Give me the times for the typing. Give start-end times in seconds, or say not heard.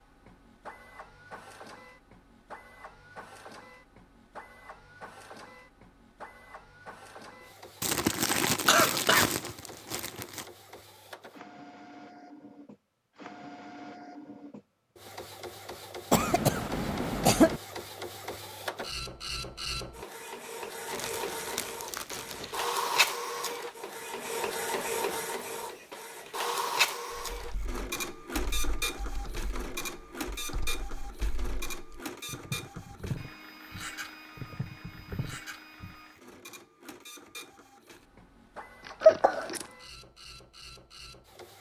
27.1-36.0.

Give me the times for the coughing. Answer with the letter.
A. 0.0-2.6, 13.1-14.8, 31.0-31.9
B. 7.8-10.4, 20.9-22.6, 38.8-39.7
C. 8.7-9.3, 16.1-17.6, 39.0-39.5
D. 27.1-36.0
C.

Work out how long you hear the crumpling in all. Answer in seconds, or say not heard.
5 s.